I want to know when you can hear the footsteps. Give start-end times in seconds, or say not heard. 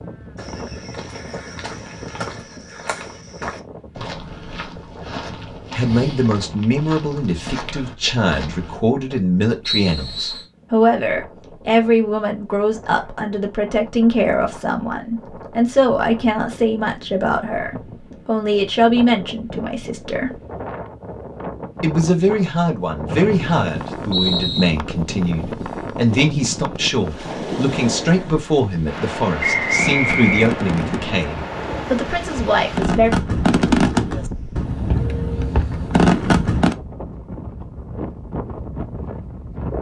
0.3-8.8.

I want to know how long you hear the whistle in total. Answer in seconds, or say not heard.
4 s.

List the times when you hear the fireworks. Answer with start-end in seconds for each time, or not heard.
29.8-36.8.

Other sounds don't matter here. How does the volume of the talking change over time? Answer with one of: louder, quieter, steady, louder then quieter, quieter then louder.
steady.